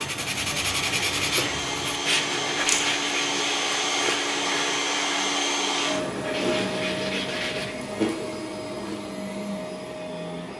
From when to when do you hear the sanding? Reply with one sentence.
The sanding can be heard from 0.0 to 7.8 s.